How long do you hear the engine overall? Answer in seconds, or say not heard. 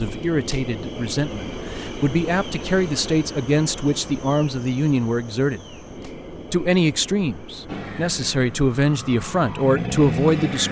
3 s.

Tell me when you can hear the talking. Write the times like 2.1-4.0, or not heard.
0.0-5.8, 6.5-10.6.